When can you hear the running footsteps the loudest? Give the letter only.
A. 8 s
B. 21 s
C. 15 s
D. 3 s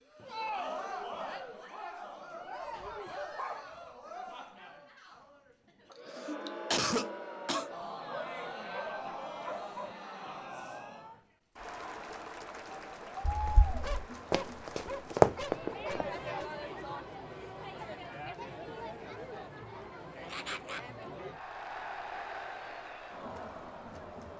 C.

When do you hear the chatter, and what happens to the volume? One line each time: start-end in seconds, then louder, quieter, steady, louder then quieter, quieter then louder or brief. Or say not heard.
0.0-24.3 steady.